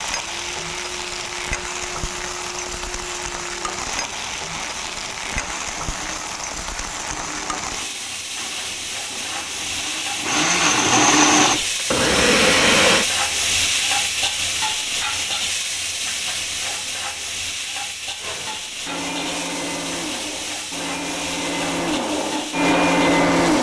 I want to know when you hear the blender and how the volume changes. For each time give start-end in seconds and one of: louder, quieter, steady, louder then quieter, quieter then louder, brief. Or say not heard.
0.0-13.1 louder
18.2-23.5 louder.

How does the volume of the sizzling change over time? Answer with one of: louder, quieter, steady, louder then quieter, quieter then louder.
louder then quieter.